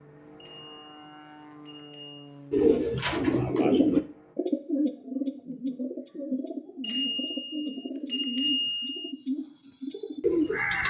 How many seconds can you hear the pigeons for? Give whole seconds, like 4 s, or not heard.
8 s.